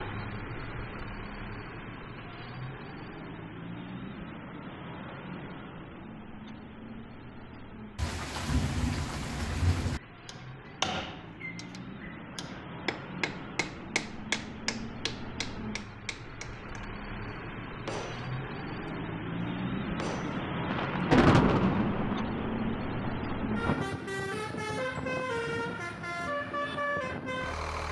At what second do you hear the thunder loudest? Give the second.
21 s.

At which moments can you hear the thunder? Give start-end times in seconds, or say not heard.
8.0-10.0, 20.7-23.9.